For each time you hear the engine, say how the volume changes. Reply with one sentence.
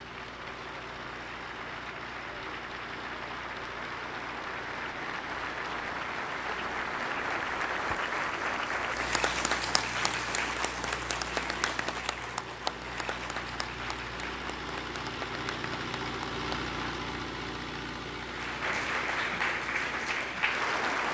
You can hear the engine from 0.0 to 21.0 s, getting louder.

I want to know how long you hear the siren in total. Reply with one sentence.
The siren can't be heard in this clip.